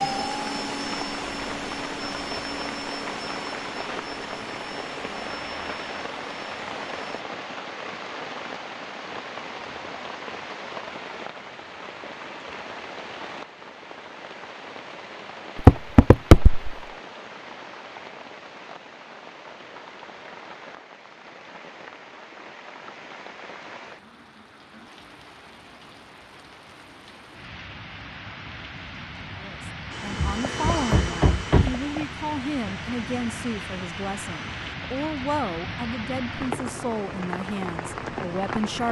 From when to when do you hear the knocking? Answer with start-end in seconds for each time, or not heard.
15.6-16.8, 30.1-32.0.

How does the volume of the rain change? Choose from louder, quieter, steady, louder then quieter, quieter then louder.
quieter then louder.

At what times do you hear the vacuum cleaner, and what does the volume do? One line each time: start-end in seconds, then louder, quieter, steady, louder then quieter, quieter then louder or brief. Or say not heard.
0.0-7.2 quieter
29.9-34.8 quieter.